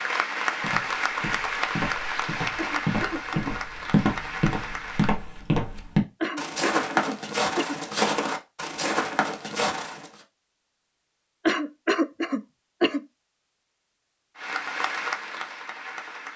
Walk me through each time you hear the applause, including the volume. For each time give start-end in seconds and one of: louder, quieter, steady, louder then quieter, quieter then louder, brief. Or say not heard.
0.0-5.2 quieter
14.3-16.3 brief.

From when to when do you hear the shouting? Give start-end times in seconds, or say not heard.
not heard.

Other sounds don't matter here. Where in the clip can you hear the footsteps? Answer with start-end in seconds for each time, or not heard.
0.6-10.1.